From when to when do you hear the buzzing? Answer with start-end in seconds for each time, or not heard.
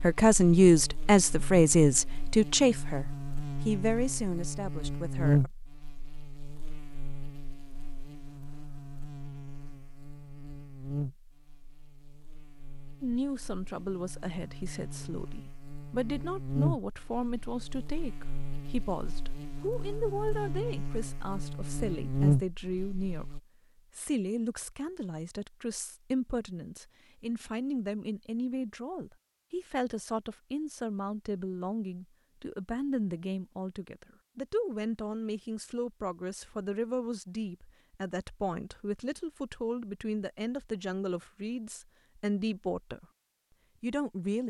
0.0-23.4.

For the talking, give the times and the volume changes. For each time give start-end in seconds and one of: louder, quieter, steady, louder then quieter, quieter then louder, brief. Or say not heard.
0.0-5.5 quieter
13.0-43.0 steady
43.8-44.4 brief.